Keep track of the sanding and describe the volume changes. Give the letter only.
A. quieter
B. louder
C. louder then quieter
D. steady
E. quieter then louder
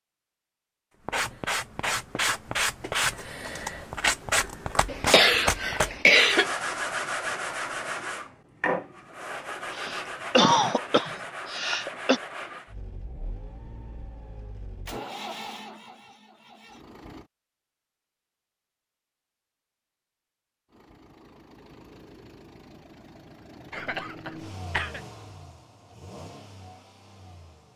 A.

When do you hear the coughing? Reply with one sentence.
The coughing can be heard from 4.8 to 6.5 s, from 9.8 to 12.2 s and from 23.7 to 25.0 s.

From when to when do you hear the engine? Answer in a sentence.
You can hear the engine from 12.7 to 17.3 s and from 20.7 to 27.7 s.